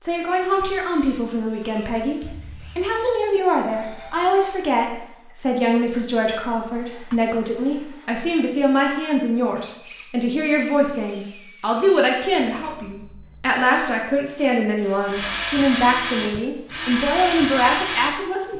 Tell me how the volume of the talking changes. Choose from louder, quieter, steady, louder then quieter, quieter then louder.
steady.